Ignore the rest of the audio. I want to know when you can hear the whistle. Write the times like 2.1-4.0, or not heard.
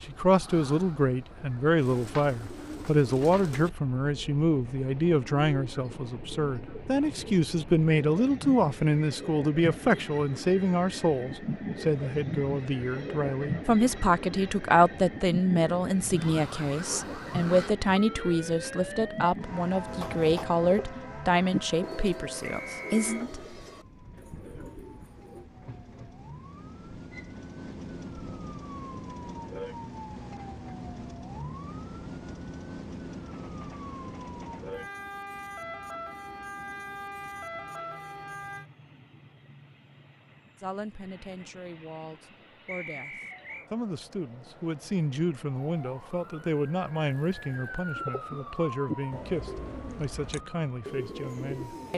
22.4-23.2, 42.6-43.7.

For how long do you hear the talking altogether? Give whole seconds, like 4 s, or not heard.
35 s.